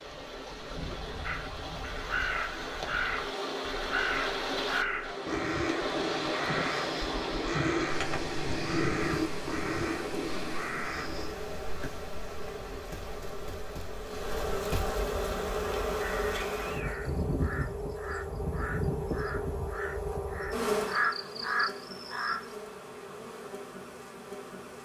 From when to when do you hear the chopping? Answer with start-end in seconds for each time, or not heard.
not heard.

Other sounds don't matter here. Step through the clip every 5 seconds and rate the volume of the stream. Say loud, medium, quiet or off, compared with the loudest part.
loud, loud, medium, off, off.